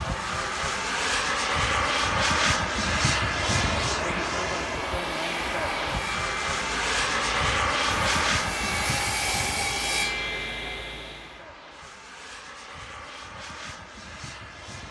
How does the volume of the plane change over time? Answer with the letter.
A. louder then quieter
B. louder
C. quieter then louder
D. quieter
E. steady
D.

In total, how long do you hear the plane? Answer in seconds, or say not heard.
15 s.